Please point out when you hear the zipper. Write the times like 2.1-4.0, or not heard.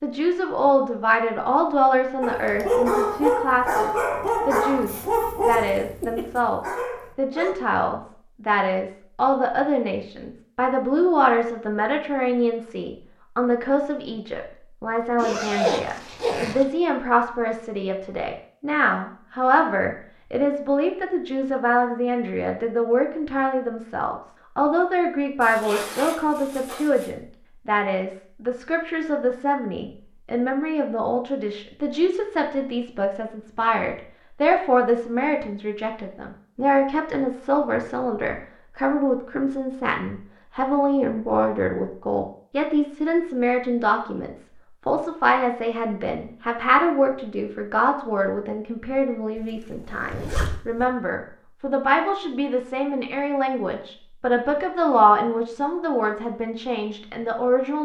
15.2-16.6, 25.4-27.1, 49.4-50.9.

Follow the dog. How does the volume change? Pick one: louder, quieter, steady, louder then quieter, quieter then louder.
quieter.